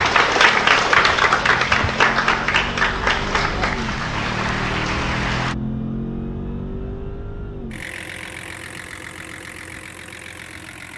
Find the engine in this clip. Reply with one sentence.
The engine can be heard from 0.0 to 10.9 s.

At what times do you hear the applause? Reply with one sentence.
The applause can be heard from 0.0 to 5.5 s.